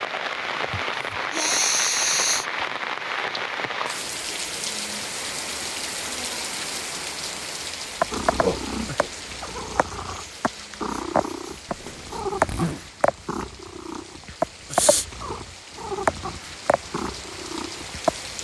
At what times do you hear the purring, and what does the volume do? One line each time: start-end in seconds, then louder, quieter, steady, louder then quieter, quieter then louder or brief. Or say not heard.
8.0-18.4 louder then quieter.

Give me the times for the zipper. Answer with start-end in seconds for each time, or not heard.
11.7-12.8.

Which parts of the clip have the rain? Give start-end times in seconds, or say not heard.
0.0-18.4.